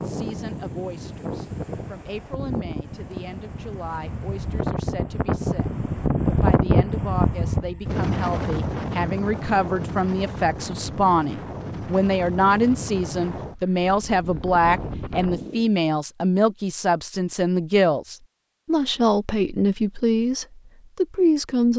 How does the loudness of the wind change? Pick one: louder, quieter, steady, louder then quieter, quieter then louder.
louder then quieter.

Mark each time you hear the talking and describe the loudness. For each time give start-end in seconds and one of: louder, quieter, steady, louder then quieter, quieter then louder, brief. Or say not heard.
0.0-21.7 louder.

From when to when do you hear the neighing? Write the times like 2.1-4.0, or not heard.
not heard.